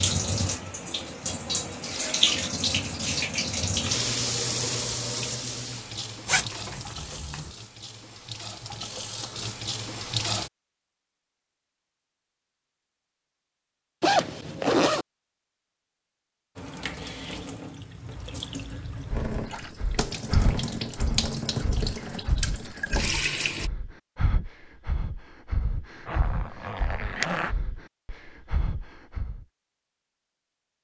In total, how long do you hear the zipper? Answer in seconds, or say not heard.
4 s.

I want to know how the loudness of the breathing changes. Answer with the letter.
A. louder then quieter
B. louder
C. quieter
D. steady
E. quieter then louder
C.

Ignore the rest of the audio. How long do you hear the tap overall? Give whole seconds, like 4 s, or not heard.
18 s.